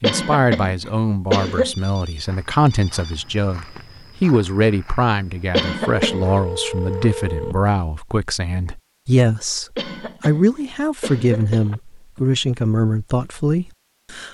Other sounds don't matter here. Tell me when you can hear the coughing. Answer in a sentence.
You can hear the coughing from 0.0 to 1.8 s, from 5.5 to 6.4 s and from 9.8 to 11.8 s.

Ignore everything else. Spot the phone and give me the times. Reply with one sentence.
You can hear the phone from 1.6 to 3.2 s, from 5.8 to 7.5 s and from 11.6 to 12.6 s.